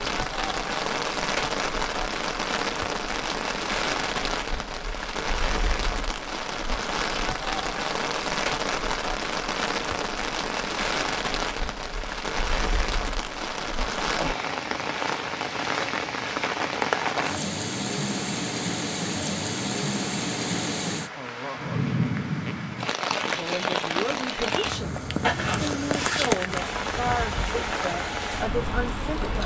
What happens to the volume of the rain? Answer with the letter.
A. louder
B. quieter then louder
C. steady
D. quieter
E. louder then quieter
C.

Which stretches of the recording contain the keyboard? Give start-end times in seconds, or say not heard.
not heard.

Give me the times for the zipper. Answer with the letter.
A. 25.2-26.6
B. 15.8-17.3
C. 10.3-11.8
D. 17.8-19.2
A.